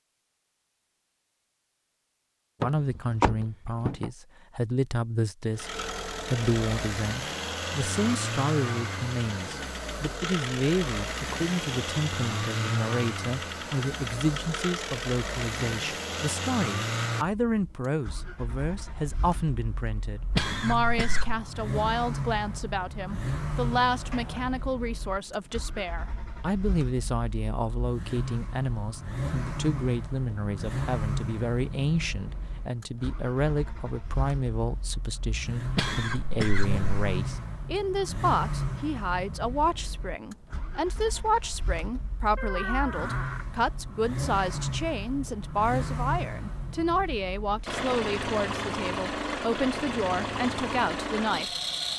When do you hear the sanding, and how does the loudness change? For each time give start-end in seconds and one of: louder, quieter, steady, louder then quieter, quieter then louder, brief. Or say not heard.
not heard.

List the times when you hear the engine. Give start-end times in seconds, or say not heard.
5.5-51.9.